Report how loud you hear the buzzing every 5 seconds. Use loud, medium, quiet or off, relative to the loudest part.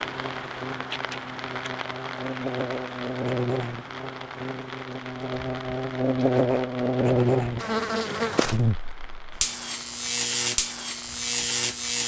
medium, loud, loud.